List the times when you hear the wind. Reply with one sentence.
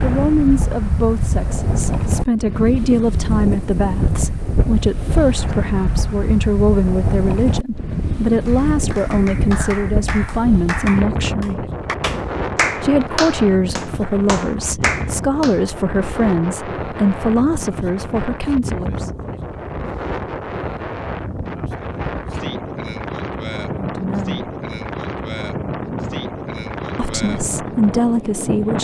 The wind can be heard from 0.0 to 28.8 s.